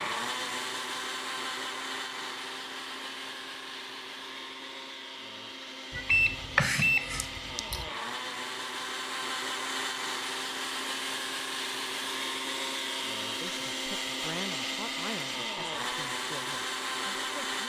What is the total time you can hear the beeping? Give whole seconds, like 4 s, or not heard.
2 s.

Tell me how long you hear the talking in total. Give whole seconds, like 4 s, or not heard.
4 s.